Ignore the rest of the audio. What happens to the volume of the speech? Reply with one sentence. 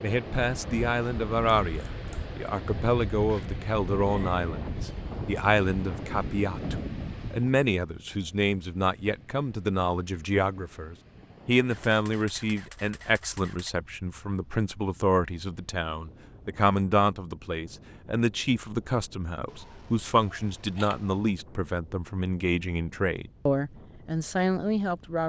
The loudness of the speech stays about the same.